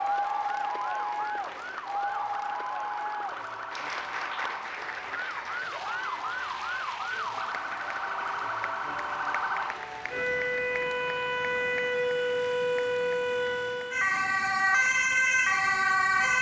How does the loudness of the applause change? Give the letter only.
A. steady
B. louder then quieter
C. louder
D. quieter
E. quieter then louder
D.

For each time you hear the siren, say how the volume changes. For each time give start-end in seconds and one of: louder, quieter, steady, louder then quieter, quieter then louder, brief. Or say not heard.
0.0-16.3 louder.